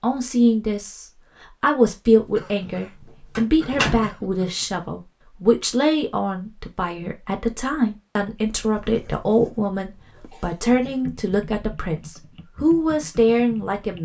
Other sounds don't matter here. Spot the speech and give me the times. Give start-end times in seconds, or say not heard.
0.0-14.0.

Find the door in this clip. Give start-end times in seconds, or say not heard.
2.1-2.7, 3.4-4.2.